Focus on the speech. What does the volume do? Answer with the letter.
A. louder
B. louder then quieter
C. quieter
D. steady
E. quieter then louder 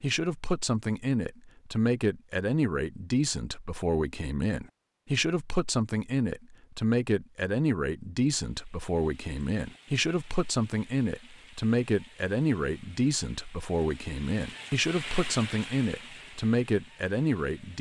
D.